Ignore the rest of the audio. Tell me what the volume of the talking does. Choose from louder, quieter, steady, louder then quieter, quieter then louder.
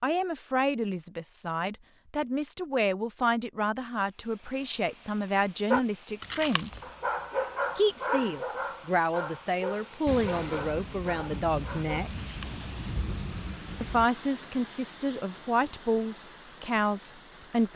steady.